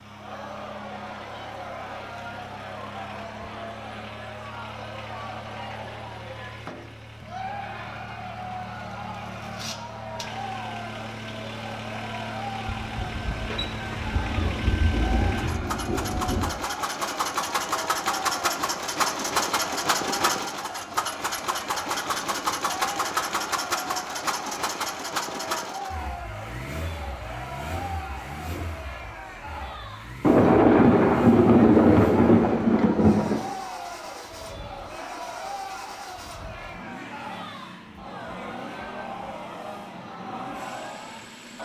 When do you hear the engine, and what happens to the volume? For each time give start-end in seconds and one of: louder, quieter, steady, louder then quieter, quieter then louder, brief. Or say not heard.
0.0-41.6 louder then quieter.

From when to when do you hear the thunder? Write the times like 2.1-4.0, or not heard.
12.8-16.6, 30.2-33.5.